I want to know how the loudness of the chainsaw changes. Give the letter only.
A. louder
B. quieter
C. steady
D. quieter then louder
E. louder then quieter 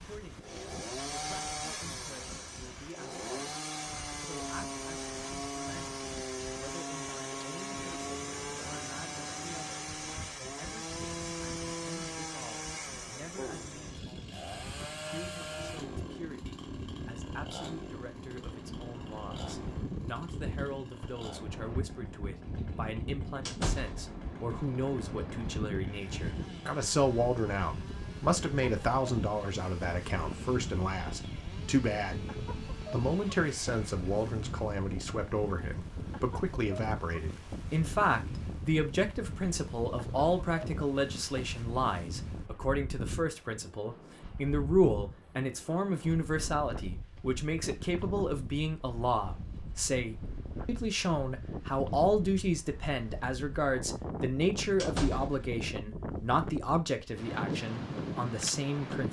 B.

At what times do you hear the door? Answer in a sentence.
You can hear the door from 23.4 to 24.1 s and from 54.8 to 55.5 s.